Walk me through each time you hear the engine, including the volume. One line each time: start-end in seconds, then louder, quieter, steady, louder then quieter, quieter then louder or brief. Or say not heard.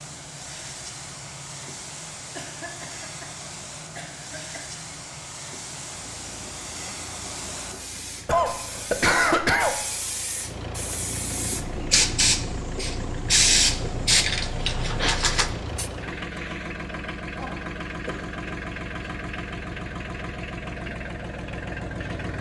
0.0-22.3 louder.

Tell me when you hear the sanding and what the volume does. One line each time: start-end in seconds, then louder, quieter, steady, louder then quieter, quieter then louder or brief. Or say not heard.
not heard.